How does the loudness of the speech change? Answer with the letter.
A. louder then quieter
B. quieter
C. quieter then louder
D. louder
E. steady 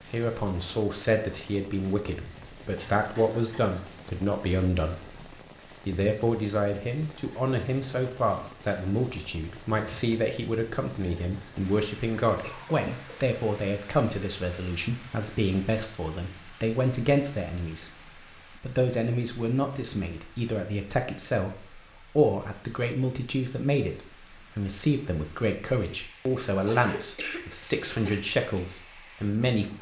E.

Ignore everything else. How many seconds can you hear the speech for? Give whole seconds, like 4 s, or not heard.
28 s.